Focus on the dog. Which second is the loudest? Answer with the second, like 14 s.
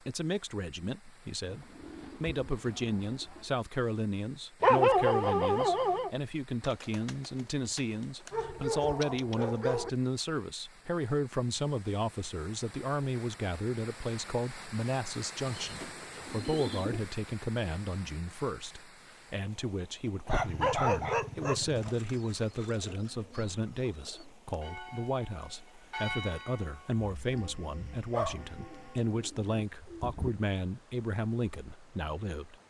5 s.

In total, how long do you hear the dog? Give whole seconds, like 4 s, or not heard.
6 s.